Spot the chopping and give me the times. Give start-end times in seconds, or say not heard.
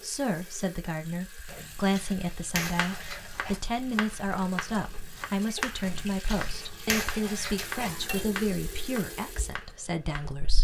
2.6-10.3.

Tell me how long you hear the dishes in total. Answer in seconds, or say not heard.
5 s.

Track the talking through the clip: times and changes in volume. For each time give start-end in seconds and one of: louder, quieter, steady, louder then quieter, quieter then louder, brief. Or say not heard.
0.0-10.5 steady.